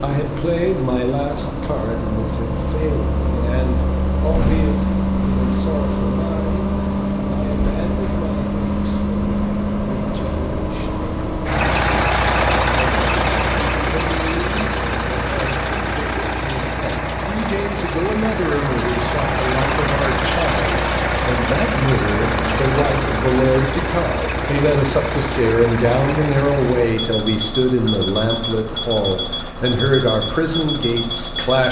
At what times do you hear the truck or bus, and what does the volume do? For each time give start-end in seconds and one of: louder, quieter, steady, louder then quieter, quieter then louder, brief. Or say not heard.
0.0-31.6 steady.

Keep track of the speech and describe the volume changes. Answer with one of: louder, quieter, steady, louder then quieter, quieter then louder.
quieter then louder.